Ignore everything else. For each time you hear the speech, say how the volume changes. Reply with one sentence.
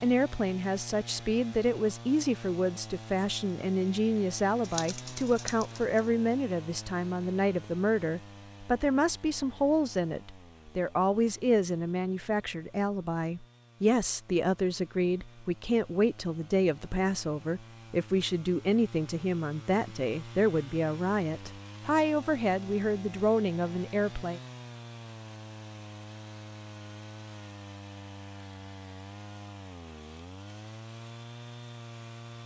The speech can be heard from 0.0 to 24.4 s, at a steady volume.